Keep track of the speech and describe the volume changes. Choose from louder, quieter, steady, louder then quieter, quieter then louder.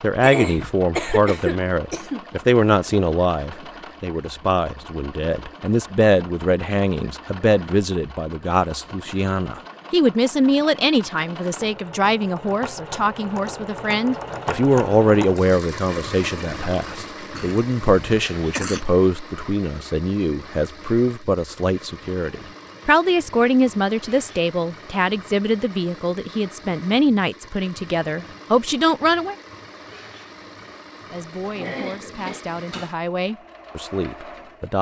steady.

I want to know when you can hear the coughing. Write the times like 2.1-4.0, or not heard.
0.2-2.2, 17.4-18.9, 31.4-33.0.